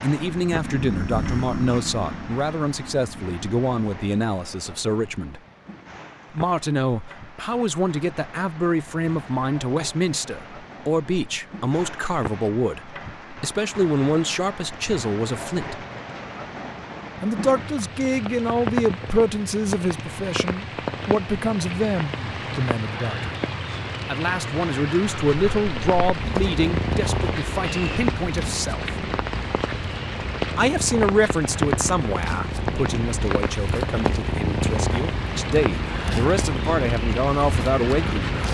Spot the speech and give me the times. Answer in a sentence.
You can hear the speech from 0.0 to 5.4 s, from 6.3 to 15.8 s, from 17.2 to 23.4 s, from 24.1 to 28.9 s and from 30.6 to 38.4 s.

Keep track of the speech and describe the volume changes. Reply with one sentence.
The volume of the speech stays about the same.